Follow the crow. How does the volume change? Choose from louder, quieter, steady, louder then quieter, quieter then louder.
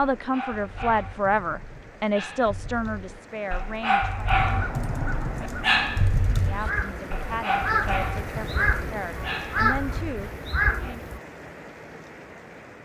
louder.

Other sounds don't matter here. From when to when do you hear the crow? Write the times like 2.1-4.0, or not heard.
4.3-11.2.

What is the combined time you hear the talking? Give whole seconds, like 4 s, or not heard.
9 s.